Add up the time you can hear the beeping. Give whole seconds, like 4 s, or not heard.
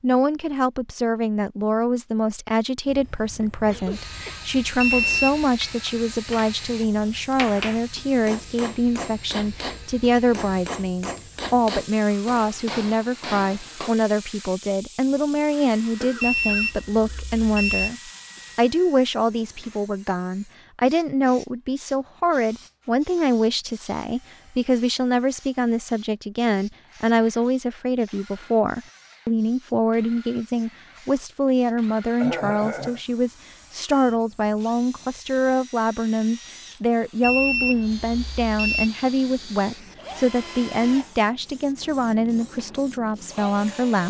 4 s.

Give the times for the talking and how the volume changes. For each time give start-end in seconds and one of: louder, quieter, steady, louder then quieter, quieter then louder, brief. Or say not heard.
0.0-44.0 steady.